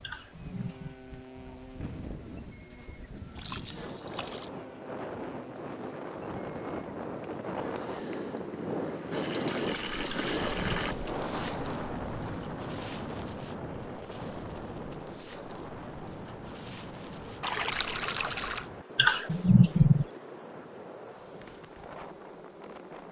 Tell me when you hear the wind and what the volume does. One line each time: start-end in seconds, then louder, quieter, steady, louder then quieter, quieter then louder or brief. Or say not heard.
0.0-23.0 louder then quieter.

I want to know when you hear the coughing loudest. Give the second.
20 s.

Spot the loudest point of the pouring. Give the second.
18 s.